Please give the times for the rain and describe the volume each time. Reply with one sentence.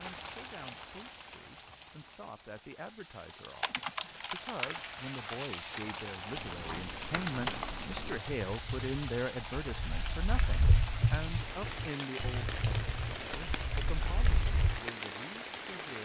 You can hear the rain from 0.0 to 15.9 s, getting louder.